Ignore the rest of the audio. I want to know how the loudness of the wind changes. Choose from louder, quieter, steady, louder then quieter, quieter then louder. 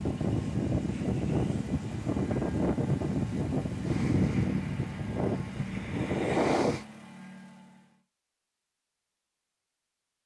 steady.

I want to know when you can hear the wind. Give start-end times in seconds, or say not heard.
0.0-6.8.